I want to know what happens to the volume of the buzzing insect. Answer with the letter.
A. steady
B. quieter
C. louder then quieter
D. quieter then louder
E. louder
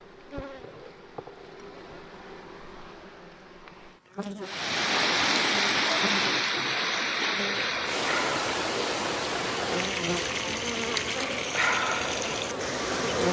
E.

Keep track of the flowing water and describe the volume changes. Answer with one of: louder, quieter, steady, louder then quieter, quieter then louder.
quieter.